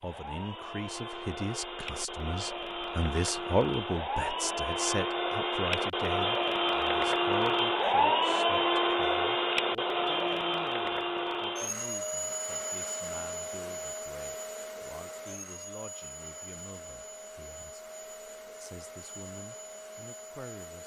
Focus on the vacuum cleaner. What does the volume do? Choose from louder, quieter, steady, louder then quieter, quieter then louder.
louder then quieter.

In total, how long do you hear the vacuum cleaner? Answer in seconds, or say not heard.
21 s.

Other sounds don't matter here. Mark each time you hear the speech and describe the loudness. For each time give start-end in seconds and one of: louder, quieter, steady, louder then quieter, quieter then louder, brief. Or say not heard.
0.0-20.8 quieter.